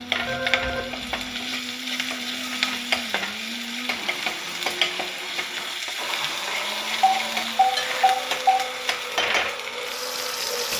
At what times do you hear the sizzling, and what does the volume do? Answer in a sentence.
The sizzling can be heard from 0.0 to 10.7 s, at a steady volume.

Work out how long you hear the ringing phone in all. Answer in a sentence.
The ringing phone can be heard for 3 seconds in total.